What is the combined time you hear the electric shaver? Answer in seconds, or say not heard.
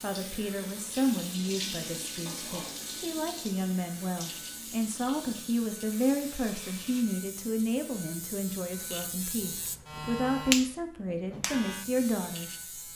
13 s.